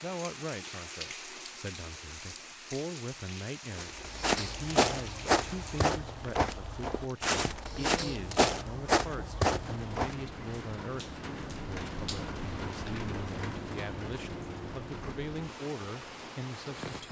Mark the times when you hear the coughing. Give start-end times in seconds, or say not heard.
not heard.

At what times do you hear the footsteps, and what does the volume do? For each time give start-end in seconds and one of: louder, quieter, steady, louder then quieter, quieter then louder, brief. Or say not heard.
3.7-10.2 steady.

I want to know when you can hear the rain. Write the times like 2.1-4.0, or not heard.
0.0-17.0.